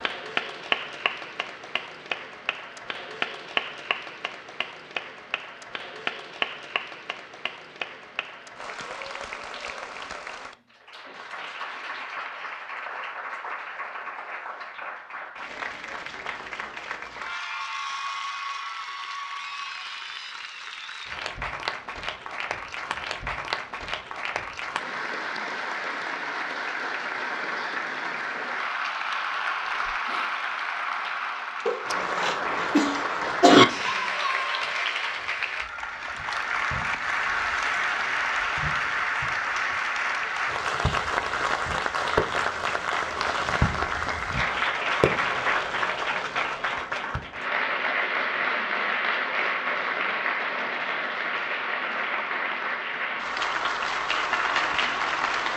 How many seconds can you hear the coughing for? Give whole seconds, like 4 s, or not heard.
2 s.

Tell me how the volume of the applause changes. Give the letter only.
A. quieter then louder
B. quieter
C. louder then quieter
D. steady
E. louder
E.